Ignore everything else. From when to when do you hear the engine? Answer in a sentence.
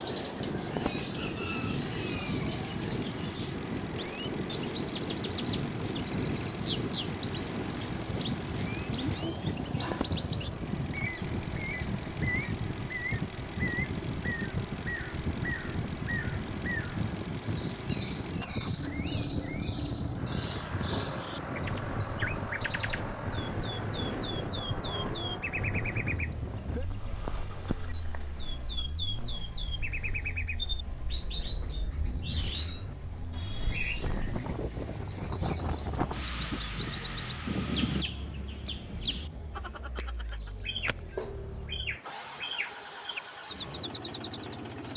You can hear the engine from 0.0 to 44.9 s.